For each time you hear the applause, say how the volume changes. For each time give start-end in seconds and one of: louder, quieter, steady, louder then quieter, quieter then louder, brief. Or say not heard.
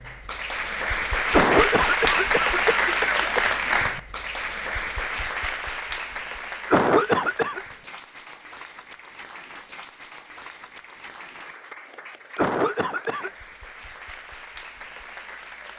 0.0-15.7 quieter.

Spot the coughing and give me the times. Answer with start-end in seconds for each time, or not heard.
1.3-3.5, 6.7-7.6, 12.3-13.3.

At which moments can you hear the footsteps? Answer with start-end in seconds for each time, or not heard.
not heard.